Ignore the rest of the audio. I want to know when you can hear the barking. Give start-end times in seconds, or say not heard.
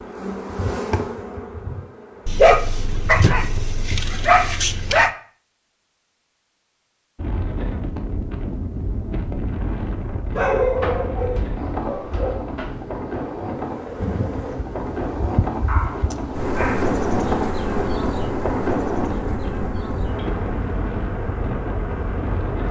2.2-5.1, 10.3-12.8, 15.7-16.9.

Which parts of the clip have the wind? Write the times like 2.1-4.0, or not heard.
7.2-22.6.